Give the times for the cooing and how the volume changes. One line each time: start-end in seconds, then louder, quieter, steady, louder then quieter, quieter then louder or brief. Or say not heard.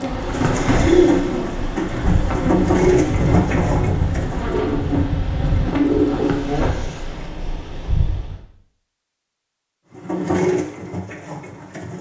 0.2-6.5 quieter then louder
9.9-11.9 brief.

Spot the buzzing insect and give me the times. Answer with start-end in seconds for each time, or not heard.
0.0-6.8.